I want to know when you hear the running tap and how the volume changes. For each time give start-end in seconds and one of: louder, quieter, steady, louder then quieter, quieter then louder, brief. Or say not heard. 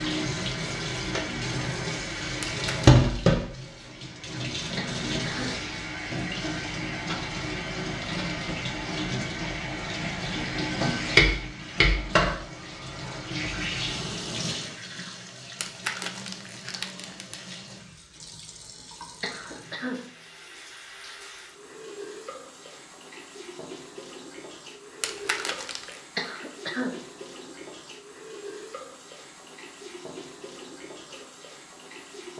0.0-32.3 quieter.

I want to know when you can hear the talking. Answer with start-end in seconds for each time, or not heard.
not heard.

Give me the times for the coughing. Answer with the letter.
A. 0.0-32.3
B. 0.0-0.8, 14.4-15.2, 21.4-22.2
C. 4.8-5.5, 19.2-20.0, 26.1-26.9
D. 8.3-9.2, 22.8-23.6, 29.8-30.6
C.